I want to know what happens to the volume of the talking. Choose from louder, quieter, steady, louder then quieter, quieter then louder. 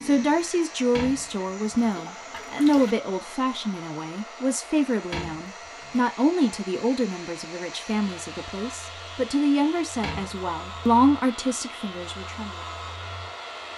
steady.